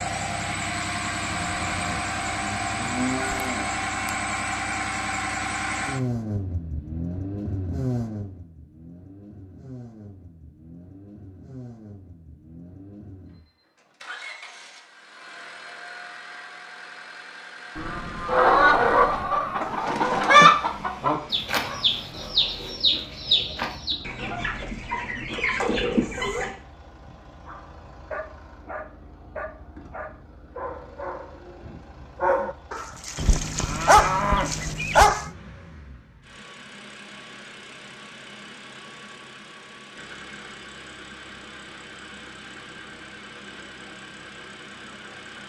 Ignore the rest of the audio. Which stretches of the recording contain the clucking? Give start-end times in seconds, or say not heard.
18.2-26.5.